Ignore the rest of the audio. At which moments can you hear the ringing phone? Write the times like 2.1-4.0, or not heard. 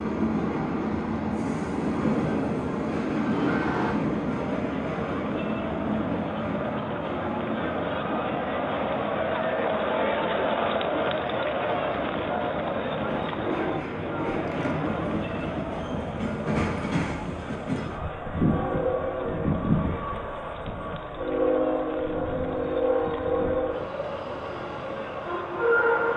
13.3-14.8.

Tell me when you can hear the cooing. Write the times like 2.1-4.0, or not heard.
not heard.